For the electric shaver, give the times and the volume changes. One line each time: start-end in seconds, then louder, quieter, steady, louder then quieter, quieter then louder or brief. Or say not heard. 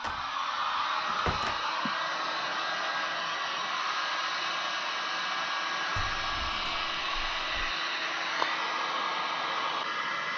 not heard.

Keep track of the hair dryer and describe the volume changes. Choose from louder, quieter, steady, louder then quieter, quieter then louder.
steady.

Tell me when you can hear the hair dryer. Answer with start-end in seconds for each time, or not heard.
0.0-10.3.